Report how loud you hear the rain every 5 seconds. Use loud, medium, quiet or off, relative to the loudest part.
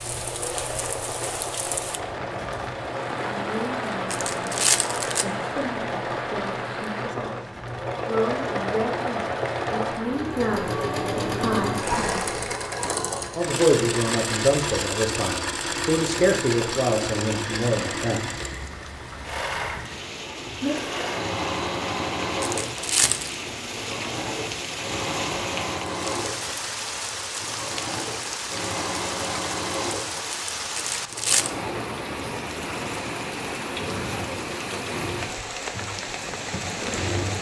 loud, loud, medium, medium, loud, loud, loud, loud.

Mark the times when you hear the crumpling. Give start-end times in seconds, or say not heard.
4.1-5.2, 22.4-23.4, 30.8-31.5.